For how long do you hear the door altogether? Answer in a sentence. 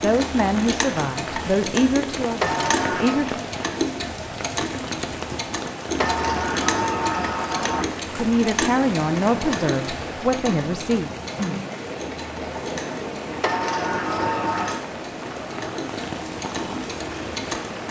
The door can be heard for 4 seconds in total.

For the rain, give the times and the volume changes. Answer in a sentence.
The rain can be heard from 0.0 to 17.8 s, at a steady volume.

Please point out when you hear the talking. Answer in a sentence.
You can hear the talking from 0.0 to 3.5 s and from 8.2 to 11.1 s.